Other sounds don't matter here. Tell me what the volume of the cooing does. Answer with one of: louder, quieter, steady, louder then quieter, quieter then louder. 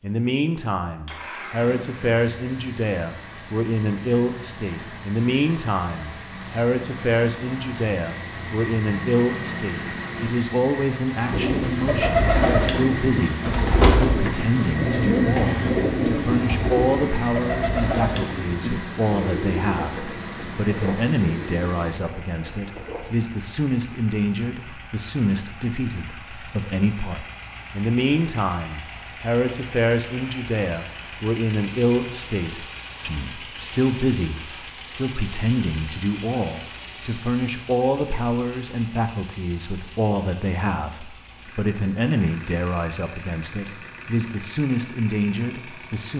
quieter.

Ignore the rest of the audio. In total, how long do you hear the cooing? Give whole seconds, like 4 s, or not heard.
12 s.